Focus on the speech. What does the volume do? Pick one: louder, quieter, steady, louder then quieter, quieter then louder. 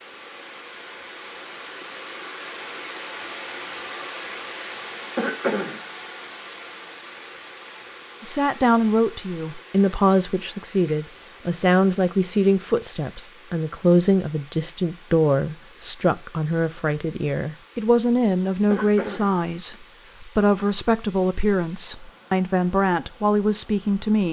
steady.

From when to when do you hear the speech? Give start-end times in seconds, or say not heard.
8.2-24.2.